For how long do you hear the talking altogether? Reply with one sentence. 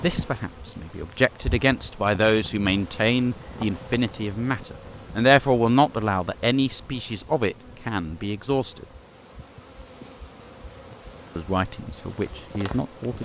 The talking can be heard for 11 seconds in total.